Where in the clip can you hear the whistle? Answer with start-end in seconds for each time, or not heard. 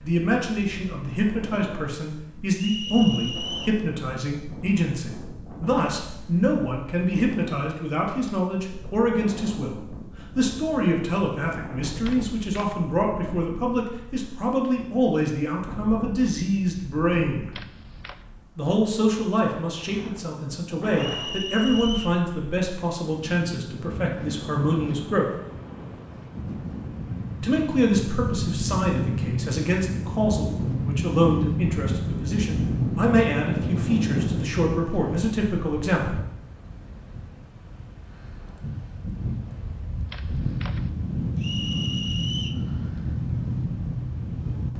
2.5-3.8, 20.9-22.2, 41.4-42.6.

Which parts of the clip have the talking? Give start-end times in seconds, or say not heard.
0.0-17.5, 18.6-25.3, 27.4-36.2.